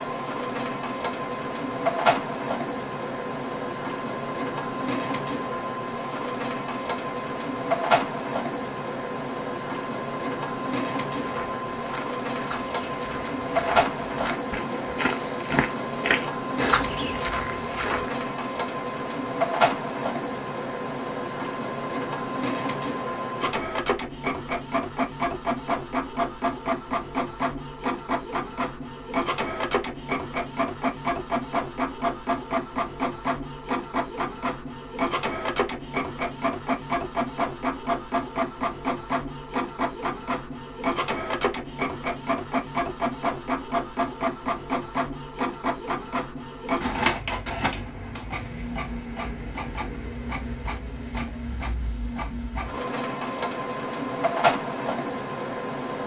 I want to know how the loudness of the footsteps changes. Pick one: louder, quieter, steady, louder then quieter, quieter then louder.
louder.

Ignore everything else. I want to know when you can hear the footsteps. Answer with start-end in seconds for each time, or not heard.
11.2-18.2.